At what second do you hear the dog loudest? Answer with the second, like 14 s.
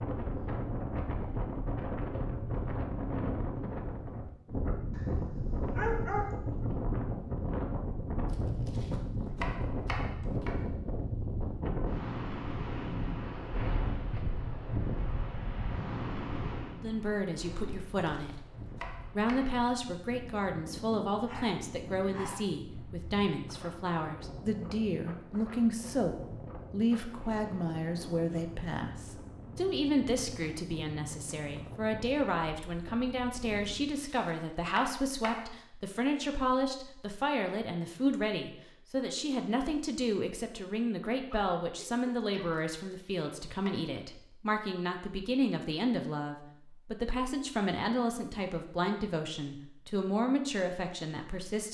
6 s.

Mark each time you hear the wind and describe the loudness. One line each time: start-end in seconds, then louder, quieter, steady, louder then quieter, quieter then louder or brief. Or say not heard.
0.0-34.1 quieter.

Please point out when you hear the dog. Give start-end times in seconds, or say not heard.
4.9-6.7, 21.2-22.4, 41.2-42.6.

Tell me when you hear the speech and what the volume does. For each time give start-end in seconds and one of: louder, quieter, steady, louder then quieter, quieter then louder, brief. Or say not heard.
16.8-51.6 steady.